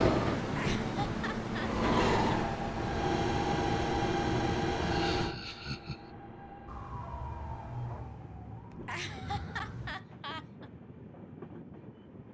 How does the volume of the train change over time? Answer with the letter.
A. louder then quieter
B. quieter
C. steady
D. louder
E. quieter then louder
B.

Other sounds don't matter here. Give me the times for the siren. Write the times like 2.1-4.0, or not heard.
6.7-9.9.